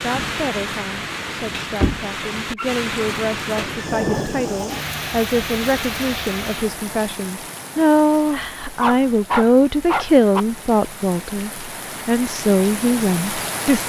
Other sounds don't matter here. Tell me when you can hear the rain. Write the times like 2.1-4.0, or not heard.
0.0-13.8.